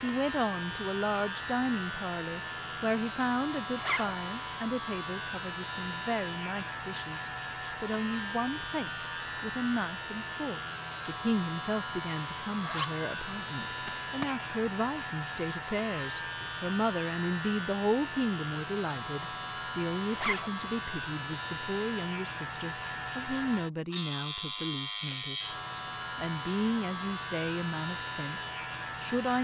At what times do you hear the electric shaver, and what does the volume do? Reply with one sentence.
The electric shaver can be heard from 0.0 to 29.4 s, at a steady volume.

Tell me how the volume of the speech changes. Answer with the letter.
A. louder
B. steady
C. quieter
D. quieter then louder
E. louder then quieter
B.